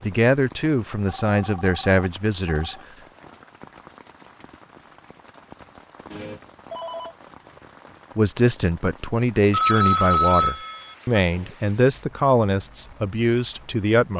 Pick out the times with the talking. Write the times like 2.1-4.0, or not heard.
0.0-2.8, 8.2-14.1.